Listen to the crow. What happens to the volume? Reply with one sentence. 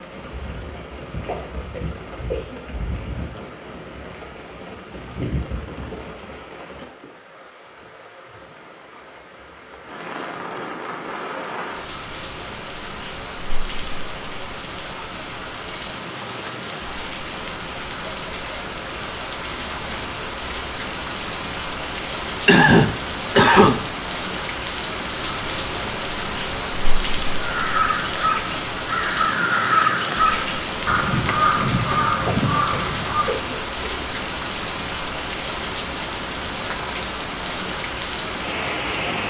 The volume of the crow stays about the same.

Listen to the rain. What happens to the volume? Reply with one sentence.
The loudness of the rain goes up.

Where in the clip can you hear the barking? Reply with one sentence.
You can't hear the barking here.